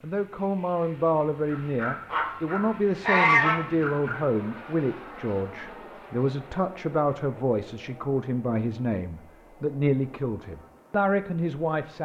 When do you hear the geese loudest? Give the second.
3 s.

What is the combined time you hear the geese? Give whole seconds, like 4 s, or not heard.
3 s.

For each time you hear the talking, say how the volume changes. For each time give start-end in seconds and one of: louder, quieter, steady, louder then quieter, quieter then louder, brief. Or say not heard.
0.0-11.9 steady.